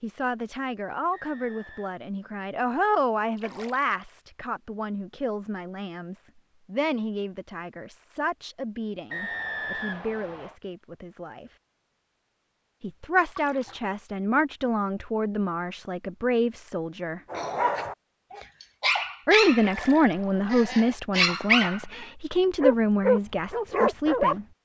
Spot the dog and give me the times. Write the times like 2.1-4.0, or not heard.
17.3-24.4.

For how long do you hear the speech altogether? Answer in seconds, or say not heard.
21 s.